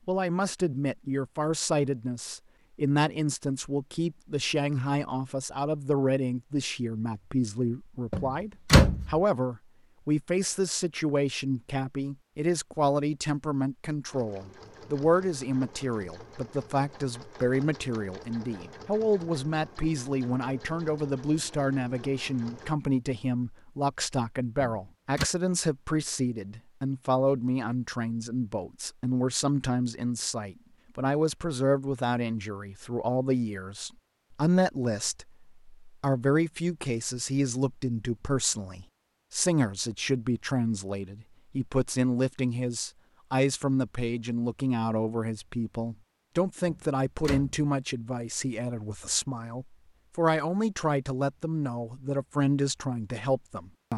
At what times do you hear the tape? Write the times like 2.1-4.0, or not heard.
not heard.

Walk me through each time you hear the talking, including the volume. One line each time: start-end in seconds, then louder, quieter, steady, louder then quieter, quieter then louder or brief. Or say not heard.
0.1-53.9 steady.